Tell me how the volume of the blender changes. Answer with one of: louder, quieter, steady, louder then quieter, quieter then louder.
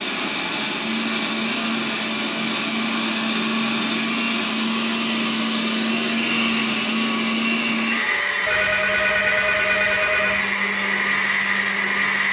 steady.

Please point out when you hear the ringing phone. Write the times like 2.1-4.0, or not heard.
8.4-10.4.